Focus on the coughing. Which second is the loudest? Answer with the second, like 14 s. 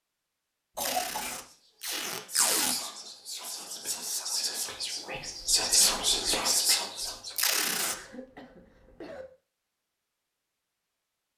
1 s.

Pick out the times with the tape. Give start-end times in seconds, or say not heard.
0.8-2.8, 7.3-8.0.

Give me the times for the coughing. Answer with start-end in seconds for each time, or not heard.
0.8-1.4, 7.9-9.2.